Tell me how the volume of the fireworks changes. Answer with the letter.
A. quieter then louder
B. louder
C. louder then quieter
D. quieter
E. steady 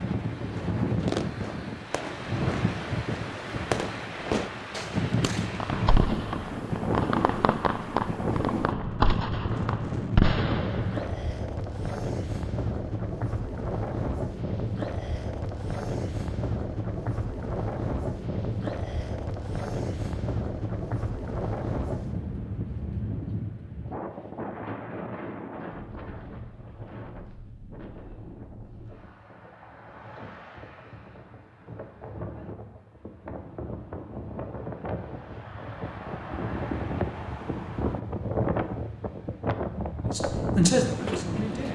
B.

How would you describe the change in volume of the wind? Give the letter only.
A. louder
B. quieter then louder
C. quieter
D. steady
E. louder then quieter
B.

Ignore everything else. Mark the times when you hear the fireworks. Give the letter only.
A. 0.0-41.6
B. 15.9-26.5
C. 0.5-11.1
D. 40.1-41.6
C.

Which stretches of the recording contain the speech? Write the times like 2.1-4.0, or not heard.
40.1-41.6.